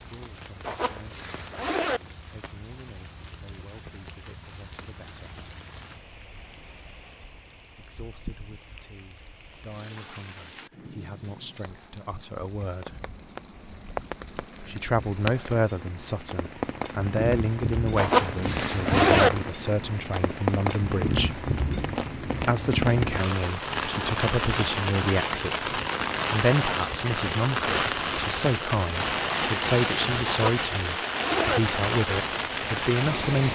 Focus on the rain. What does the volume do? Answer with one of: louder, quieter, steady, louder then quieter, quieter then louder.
louder.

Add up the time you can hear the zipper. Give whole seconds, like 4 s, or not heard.
4 s.